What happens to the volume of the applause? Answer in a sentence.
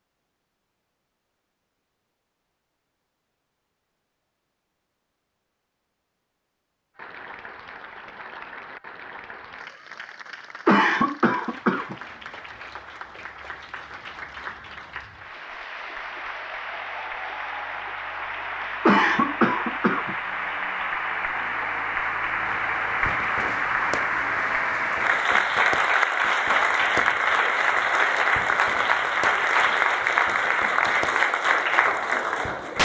The volume of the applause goes up.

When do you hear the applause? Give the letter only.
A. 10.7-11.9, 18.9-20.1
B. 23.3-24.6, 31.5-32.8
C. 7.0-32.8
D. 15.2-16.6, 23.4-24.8
C.